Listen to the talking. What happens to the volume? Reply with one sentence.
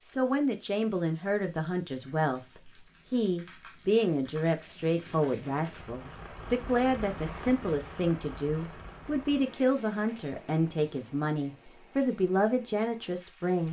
The volume of the talking stays about the same.